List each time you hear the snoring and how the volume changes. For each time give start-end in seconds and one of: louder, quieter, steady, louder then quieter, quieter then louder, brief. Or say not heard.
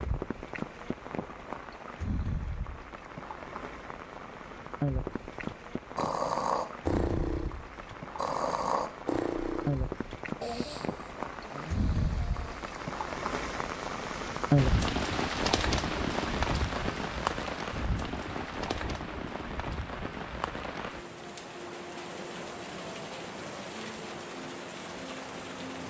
5.1-12.6 quieter.